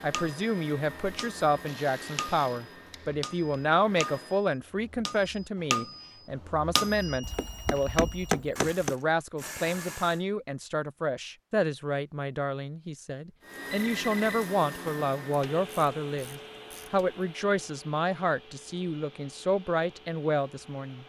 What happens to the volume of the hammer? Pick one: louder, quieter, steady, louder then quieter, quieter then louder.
louder.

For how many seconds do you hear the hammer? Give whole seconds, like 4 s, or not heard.
9 s.